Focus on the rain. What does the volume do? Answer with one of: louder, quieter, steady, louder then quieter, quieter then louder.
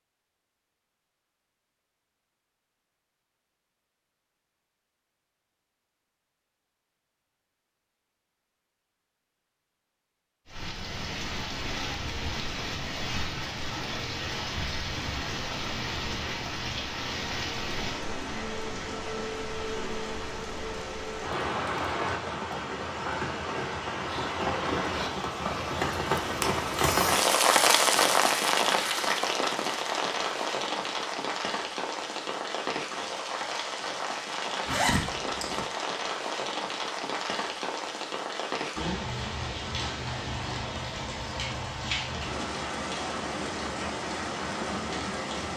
louder then quieter.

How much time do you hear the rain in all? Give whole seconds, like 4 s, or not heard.
35 s.